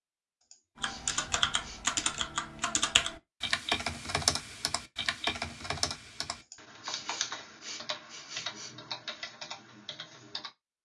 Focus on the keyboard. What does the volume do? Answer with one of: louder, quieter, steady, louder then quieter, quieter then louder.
quieter.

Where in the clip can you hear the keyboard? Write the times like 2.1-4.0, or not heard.
0.8-10.5.